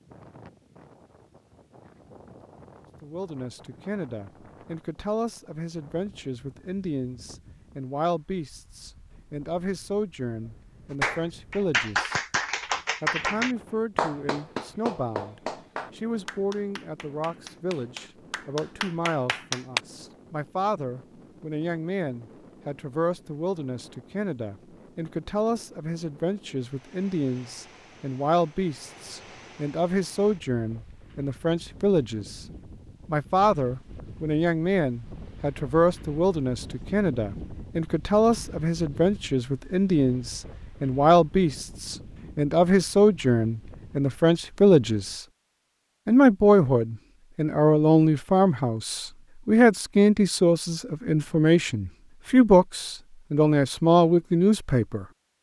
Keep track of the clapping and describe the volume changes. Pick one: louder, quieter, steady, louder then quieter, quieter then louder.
quieter then louder.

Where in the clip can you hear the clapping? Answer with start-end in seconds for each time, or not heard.
11.0-19.8.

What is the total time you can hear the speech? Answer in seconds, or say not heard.
49 s.